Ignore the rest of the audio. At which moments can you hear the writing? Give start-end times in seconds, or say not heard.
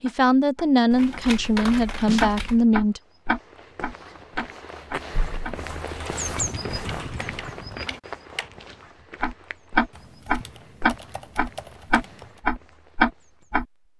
not heard.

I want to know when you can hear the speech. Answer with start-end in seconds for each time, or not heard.
0.0-3.0.